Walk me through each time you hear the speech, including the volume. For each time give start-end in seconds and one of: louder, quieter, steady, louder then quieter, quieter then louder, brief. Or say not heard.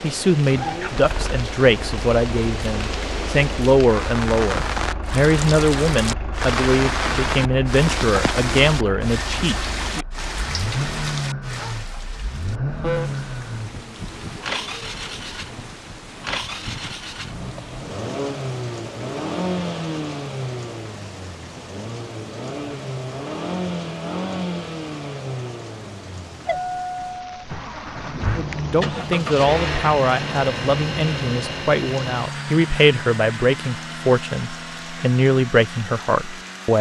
0.0-10.1 steady
28.4-36.7 steady.